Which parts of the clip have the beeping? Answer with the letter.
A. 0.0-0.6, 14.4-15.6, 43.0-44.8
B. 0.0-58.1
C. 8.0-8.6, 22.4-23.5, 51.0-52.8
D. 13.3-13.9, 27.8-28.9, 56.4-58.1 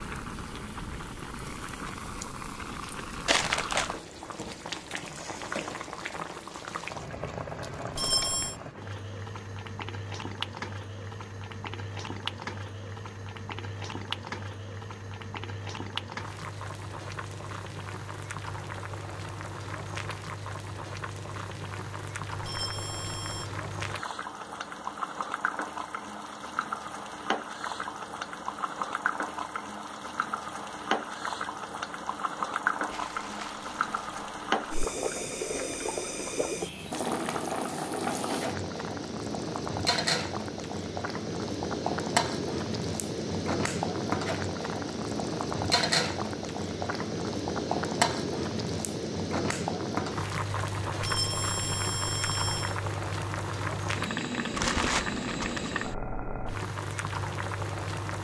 C.